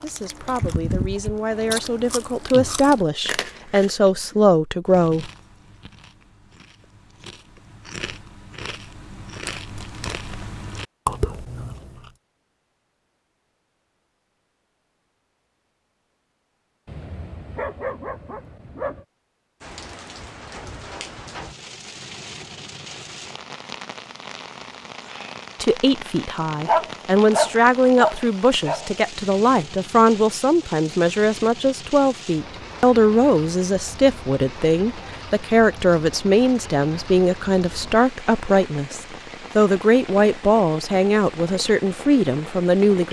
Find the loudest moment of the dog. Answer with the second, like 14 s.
27 s.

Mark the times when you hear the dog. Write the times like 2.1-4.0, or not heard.
16.9-19.1, 26.4-28.9.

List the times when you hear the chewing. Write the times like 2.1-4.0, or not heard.
0.0-12.1.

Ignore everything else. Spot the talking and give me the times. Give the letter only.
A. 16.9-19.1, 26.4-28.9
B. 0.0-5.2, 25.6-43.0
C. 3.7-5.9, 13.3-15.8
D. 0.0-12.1
B.